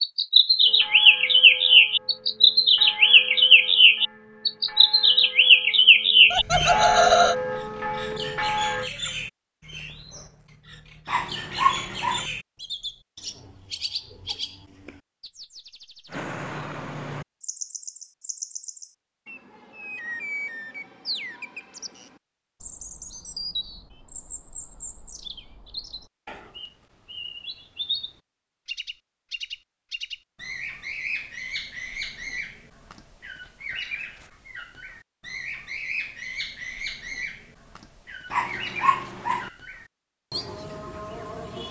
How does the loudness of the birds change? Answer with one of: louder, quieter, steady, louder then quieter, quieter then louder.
quieter.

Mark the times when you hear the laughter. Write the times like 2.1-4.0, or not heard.
6.3-7.3.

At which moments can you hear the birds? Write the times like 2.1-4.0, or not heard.
0.0-41.6.